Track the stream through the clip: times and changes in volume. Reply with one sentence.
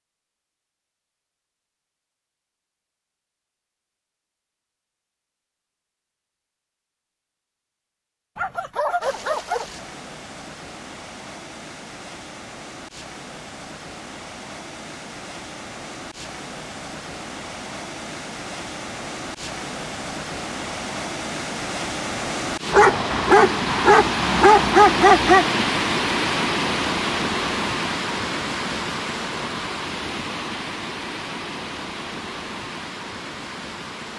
You can hear the stream from 9.0 to 34.1 s, getting louder then quieter.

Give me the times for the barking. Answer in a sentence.
You can hear the barking from 8.3 to 9.8 s and from 22.7 to 25.5 s.